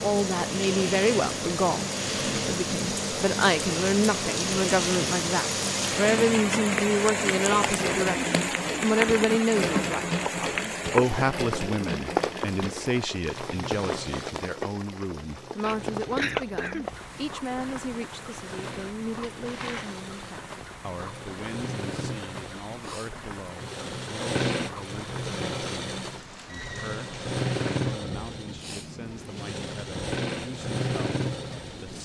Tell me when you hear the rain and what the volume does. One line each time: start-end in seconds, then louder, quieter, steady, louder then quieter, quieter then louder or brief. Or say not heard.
0.0-31.9 quieter.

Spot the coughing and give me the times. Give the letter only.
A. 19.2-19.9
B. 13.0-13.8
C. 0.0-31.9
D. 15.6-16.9
D.